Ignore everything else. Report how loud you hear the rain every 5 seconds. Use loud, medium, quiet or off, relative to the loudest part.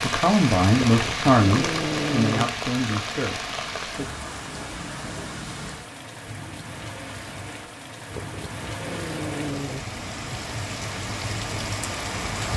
loud, medium, loud.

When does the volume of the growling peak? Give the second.
2 s.